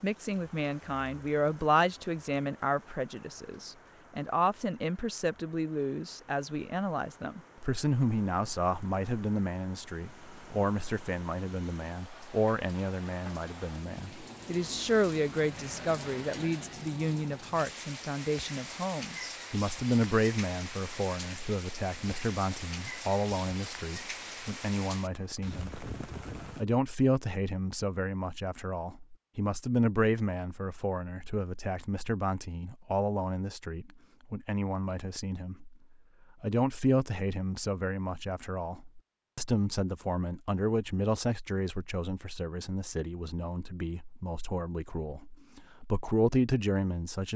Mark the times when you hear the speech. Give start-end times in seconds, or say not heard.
0.0-25.9, 26.6-35.8, 36.4-47.3.